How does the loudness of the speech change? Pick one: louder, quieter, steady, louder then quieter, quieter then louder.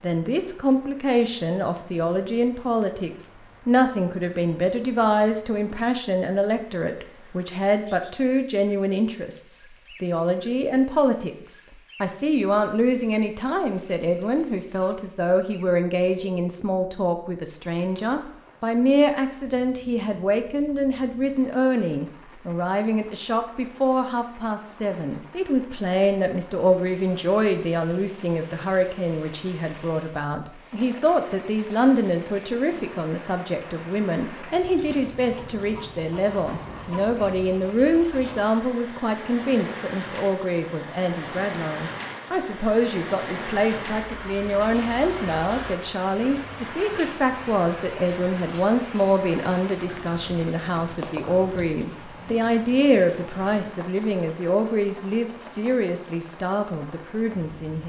steady.